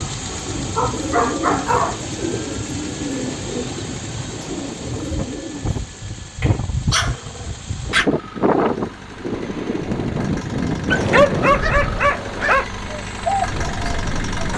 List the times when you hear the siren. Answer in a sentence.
The siren can't be heard in this clip.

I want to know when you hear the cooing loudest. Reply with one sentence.
The loudest moment of the cooing is at 13 seconds.